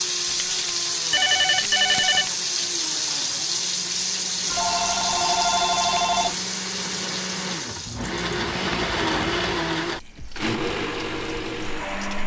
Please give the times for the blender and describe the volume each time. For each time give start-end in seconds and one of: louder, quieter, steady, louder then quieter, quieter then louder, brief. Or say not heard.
0.0-12.2 louder.